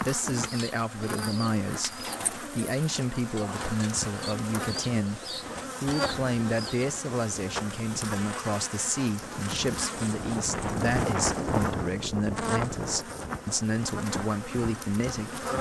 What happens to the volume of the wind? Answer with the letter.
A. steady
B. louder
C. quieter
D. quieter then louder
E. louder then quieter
E.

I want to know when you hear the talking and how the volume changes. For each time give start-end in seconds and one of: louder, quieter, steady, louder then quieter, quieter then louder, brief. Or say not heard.
0.0-15.4 steady.